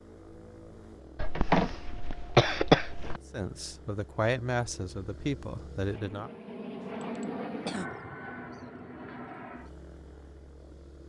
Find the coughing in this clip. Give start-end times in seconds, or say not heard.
1.1-3.2, 7.0-7.8.